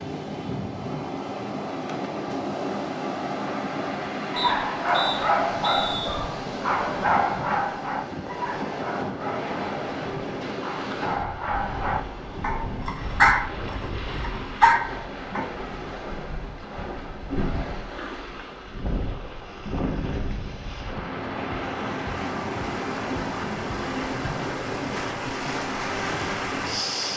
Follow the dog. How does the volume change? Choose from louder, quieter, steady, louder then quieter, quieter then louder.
quieter then louder.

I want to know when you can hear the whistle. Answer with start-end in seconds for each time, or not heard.
4.3-6.2.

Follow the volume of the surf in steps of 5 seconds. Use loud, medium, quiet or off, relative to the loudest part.
loud, loud, medium, medium, loud, loud.